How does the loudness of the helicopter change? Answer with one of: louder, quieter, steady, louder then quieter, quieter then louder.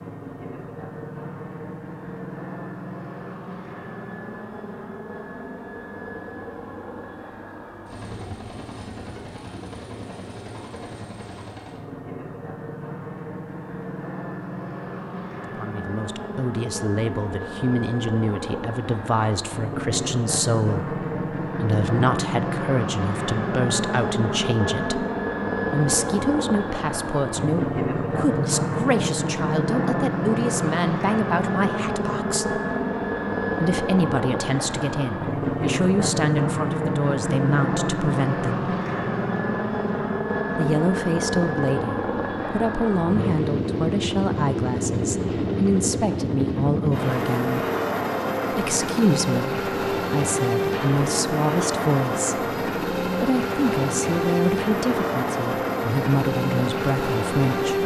louder.